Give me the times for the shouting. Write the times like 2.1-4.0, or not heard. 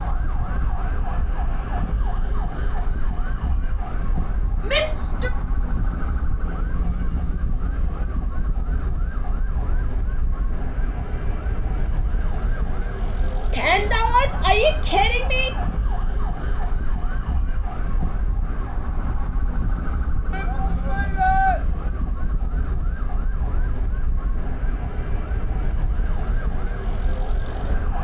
4.7-5.3, 13.5-15.5, 20.3-21.6.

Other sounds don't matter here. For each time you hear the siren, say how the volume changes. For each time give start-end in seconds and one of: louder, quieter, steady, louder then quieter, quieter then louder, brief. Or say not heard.
0.0-28.0 steady.